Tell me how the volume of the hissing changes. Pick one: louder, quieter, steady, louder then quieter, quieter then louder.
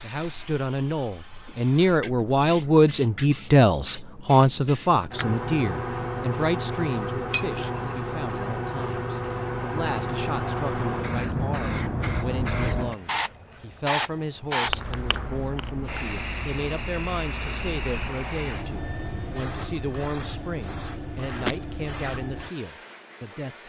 louder then quieter.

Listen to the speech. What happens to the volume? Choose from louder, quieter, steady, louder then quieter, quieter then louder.
quieter.